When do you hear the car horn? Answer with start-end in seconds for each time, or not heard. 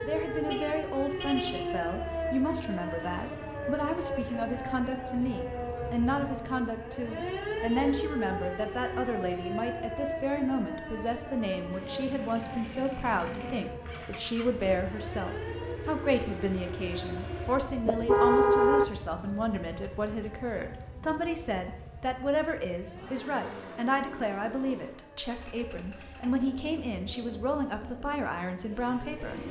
0.5-1.9, 17.9-18.9.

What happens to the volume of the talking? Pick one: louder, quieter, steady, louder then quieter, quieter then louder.
steady.